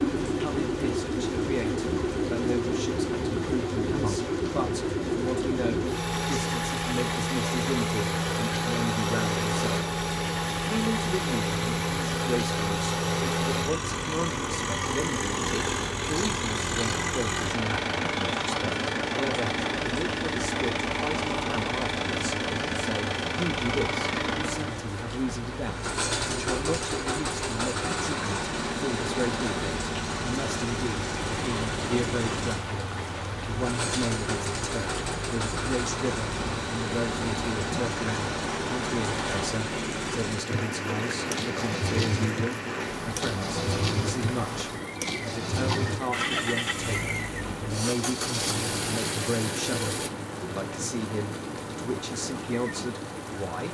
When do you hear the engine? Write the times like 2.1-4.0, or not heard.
0.0-50.1.